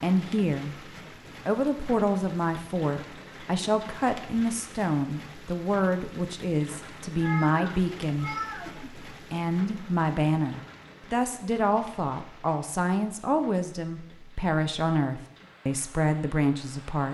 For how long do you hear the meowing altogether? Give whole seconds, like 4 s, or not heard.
2 s.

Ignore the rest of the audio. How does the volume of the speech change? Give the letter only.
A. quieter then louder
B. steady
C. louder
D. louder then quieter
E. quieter
B.